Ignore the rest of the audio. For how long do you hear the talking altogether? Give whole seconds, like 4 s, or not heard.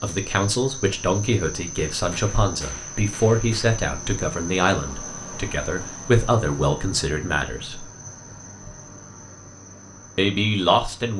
9 s.